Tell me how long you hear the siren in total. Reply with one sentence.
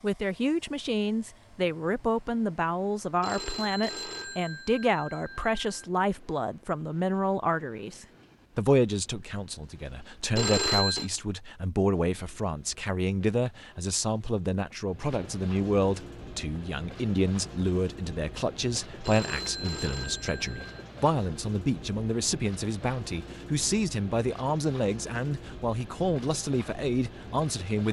You can't hear the siren here.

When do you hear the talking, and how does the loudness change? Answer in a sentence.
You can hear the talking from 0.0 to 27.8 s, at a steady volume.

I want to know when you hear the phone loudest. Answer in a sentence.
The volume of the phone peaks at 11 seconds.